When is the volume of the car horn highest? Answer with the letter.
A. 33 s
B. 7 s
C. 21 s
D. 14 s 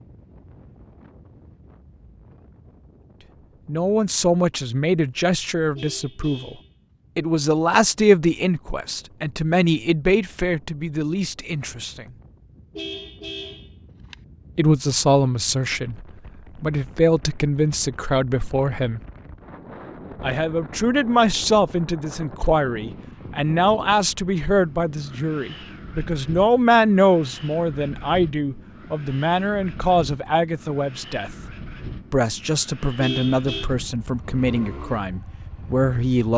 A.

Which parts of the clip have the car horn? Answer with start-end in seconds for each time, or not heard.
5.8-6.7, 12.8-14.2, 33.0-33.7.